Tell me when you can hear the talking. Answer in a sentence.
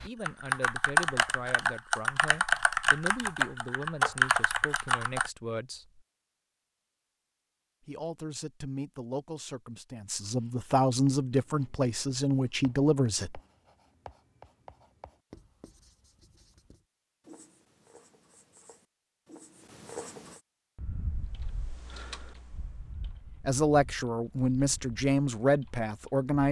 You can hear the talking from 0.0 to 6.0 s, from 7.8 to 13.4 s and from 23.4 to 26.4 s.